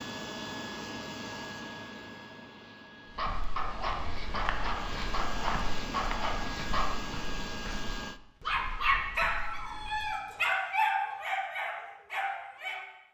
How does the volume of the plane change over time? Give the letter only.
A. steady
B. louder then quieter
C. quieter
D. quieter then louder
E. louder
D.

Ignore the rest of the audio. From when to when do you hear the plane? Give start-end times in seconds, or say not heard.
0.0-8.2.